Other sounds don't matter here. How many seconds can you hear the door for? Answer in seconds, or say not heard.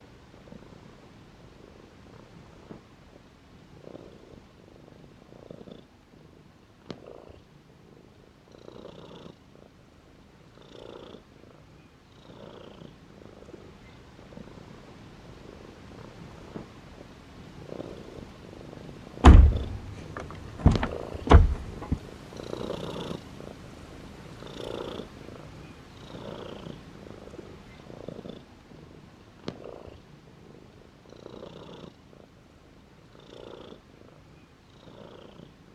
3 s.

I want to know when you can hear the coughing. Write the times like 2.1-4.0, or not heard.
not heard.